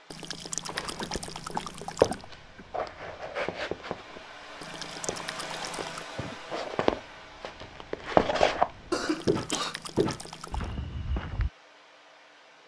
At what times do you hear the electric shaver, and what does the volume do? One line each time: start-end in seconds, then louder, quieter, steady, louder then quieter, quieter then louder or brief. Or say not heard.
not heard.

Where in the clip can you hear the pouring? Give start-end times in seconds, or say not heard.
0.1-2.2, 4.6-6.0, 9.1-10.7.